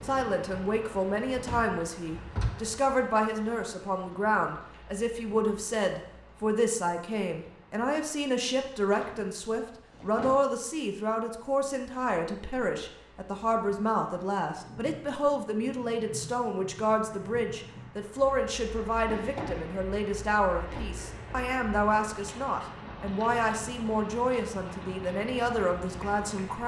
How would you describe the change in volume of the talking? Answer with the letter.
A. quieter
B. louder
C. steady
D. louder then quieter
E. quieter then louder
C.